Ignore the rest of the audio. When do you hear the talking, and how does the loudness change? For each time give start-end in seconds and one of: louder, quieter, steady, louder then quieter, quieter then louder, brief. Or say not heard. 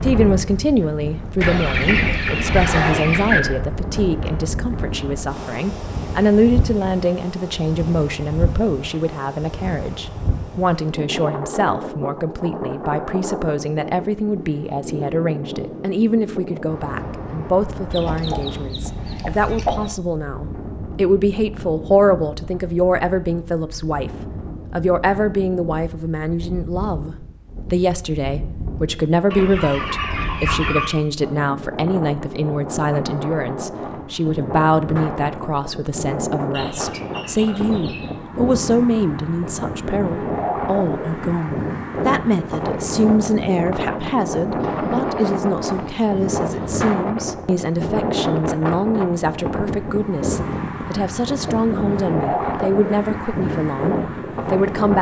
0.0-54.9 steady.